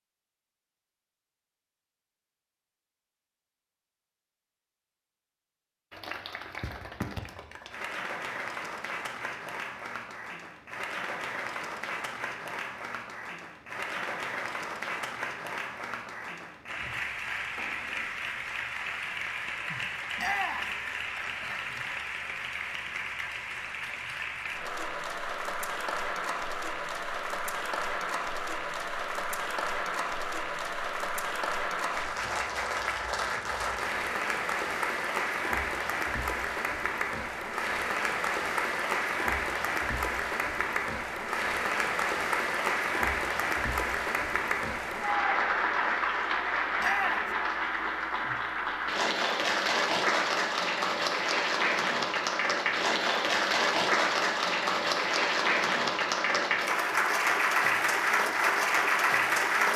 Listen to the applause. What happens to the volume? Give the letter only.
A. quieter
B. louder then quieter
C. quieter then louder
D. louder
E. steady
D.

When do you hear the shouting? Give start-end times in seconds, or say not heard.
20.1-20.7, 46.8-47.4.